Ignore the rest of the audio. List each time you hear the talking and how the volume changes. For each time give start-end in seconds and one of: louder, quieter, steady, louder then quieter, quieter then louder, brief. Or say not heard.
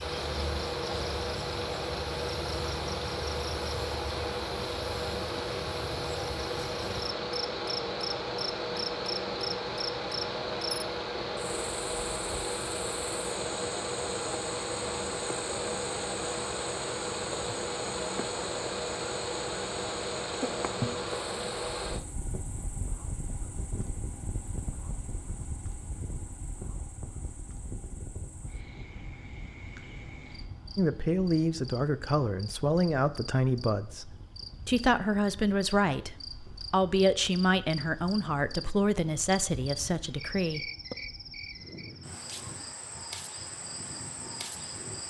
30.8-41.0 steady.